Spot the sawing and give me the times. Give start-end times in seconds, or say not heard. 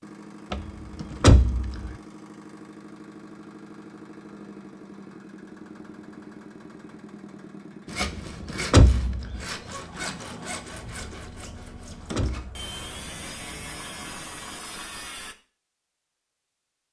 7.8-15.3.